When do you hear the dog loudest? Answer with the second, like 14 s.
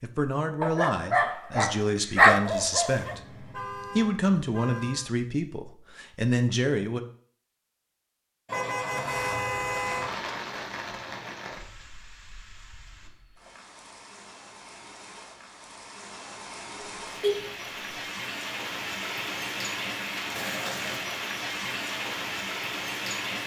2 s.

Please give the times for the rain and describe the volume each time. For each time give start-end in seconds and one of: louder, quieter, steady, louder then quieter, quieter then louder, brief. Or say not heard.
9.6-23.4 quieter then louder.